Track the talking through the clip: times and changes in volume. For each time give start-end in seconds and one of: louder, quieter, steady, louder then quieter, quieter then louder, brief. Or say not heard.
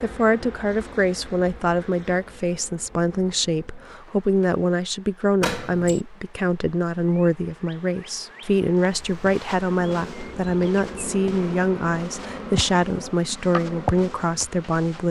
0.0-15.0 steady.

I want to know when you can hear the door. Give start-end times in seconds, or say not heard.
5.4-6.0.